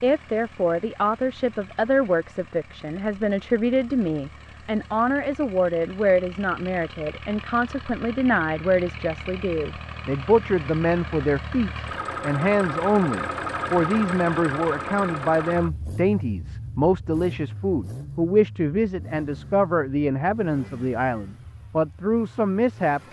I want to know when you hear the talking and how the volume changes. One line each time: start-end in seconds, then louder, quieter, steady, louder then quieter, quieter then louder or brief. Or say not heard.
0.0-23.0 steady.